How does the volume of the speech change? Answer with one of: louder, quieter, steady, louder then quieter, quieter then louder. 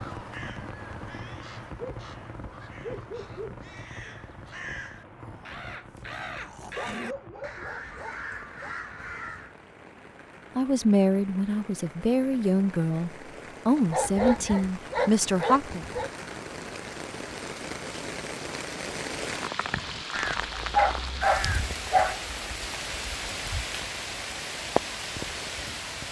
steady.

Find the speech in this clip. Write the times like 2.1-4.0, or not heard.
10.6-15.8.